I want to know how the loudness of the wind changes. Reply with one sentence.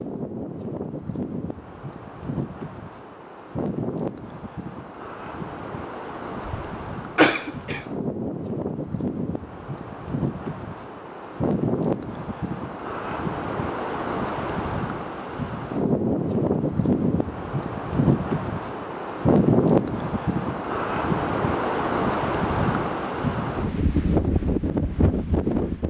The volume of the wind goes up.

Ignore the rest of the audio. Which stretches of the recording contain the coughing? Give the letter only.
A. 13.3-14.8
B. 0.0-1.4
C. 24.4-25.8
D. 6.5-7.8
D.